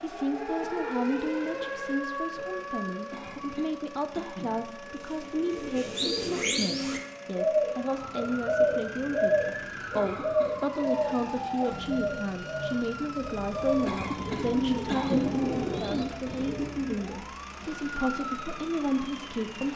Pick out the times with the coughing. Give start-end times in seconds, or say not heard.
3.1-4.7, 9.9-10.6, 13.8-15.3.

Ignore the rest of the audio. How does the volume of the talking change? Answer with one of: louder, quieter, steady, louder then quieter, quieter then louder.
steady.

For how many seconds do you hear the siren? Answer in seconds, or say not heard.
20 s.